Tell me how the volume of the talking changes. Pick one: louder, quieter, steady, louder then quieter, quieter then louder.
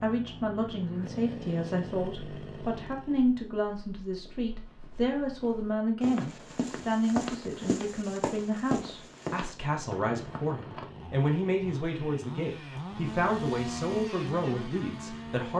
steady.